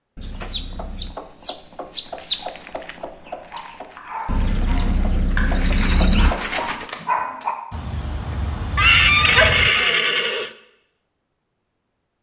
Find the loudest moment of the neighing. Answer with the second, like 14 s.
9 s.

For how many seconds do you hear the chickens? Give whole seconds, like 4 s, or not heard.
7 s.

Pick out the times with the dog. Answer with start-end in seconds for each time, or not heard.
3.2-9.8.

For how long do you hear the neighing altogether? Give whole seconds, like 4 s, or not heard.
5 s.